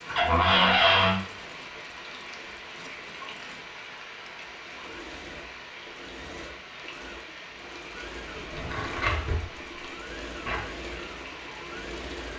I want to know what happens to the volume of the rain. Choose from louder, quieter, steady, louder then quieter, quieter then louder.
steady.